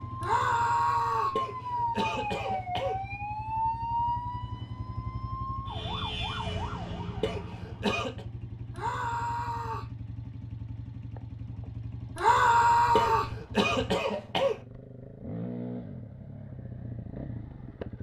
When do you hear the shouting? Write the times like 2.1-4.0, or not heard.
0.2-1.4, 8.7-9.9, 12.2-13.3.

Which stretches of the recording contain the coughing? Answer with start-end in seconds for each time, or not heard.
1.4-3.0, 7.2-8.2, 12.9-14.6.